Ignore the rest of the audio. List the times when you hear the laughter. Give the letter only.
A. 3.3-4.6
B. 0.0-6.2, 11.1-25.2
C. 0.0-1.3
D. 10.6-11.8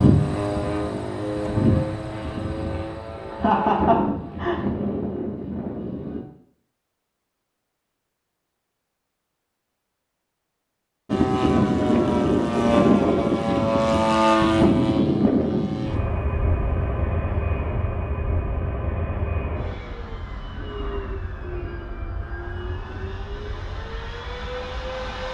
A.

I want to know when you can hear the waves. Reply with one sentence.
The waves can't be heard in this clip.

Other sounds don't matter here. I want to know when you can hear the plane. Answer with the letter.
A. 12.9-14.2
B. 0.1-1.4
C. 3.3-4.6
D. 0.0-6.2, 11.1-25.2
D.